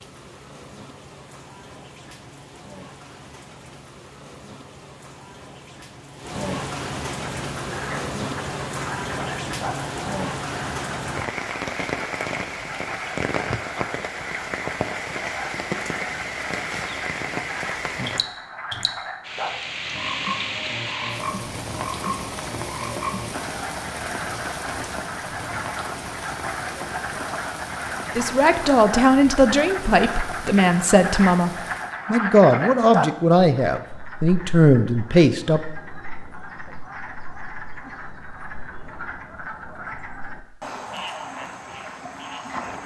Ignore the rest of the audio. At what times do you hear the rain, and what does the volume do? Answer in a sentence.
The rain can be heard from 0.0 to 31.9 s, getting louder then quieter.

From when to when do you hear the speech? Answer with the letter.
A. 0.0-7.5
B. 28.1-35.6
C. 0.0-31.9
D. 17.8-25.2
B.